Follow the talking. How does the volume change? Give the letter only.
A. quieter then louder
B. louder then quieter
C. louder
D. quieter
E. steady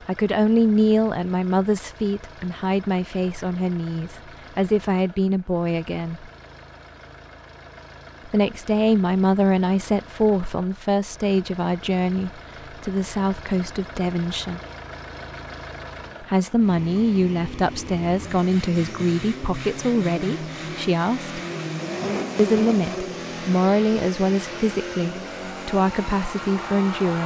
E.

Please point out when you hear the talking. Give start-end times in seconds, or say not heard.
0.1-6.3, 8.2-14.6, 16.2-21.3, 22.4-27.2.